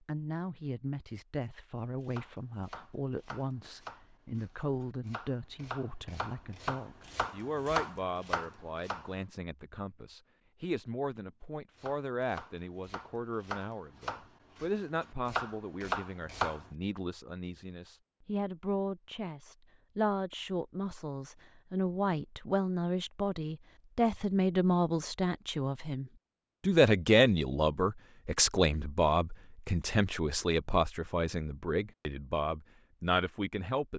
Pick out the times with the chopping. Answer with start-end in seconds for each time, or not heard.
1.8-9.2, 11.8-16.6.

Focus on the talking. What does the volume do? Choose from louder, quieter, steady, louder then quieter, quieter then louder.
louder.